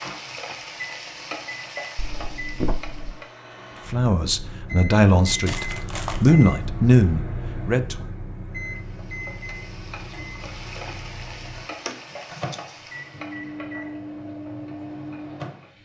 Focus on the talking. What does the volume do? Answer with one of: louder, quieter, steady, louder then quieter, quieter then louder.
louder then quieter.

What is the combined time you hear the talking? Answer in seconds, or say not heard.
4 s.